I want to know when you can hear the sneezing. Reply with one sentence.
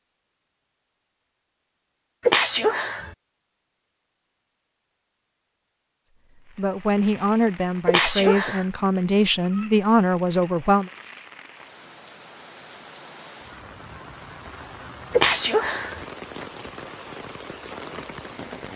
The sneezing can be heard from 2.2 to 3.1 s, from 7.8 to 8.7 s and from 15.1 to 16.0 s.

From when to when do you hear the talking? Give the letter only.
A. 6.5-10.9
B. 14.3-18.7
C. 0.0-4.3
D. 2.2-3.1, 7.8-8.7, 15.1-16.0
A.